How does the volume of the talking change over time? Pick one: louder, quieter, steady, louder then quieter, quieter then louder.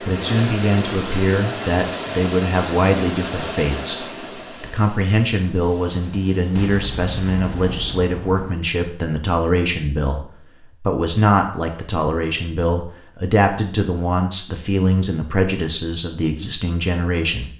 steady.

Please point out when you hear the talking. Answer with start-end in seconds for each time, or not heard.
0.0-17.5.